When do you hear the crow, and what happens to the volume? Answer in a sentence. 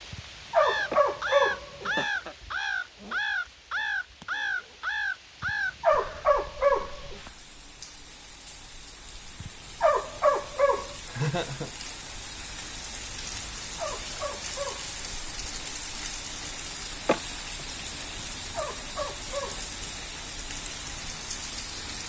The crow can be heard from 0.6 to 7.4 s, getting quieter.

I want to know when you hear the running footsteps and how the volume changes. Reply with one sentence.
The running footsteps can't be heard in this clip.